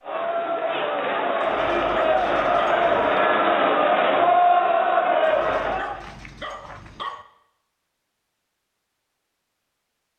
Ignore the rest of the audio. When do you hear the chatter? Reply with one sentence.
The chatter can be heard from 0.0 to 6.0 s.